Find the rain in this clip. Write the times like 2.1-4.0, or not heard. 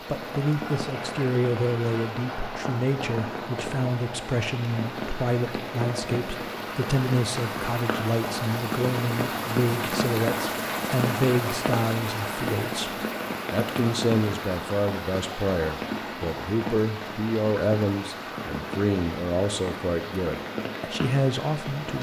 0.0-21.9.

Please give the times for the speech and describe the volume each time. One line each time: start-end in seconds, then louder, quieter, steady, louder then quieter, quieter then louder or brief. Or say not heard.
0.1-21.9 steady.